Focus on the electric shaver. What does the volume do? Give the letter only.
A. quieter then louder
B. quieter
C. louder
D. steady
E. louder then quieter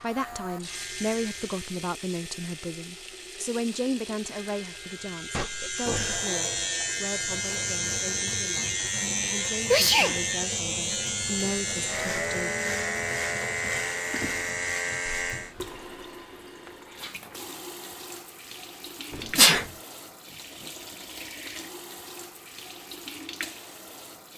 C.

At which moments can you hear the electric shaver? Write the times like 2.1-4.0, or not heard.
0.0-15.6.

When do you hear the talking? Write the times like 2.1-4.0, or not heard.
0.0-12.5.